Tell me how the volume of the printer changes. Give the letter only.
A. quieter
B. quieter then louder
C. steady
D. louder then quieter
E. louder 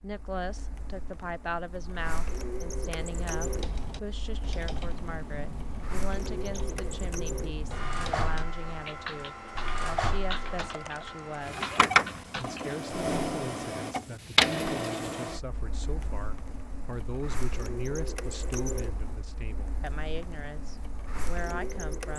D.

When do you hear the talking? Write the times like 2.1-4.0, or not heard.
0.0-22.1.